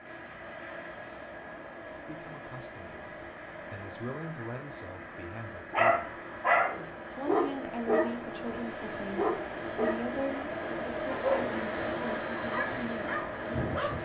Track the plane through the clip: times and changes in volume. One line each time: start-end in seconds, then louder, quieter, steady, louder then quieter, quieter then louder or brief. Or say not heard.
0.0-13.9 louder.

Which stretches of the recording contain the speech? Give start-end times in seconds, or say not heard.
2.0-6.1, 7.2-13.9.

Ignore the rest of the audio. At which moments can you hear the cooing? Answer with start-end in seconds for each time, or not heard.
not heard.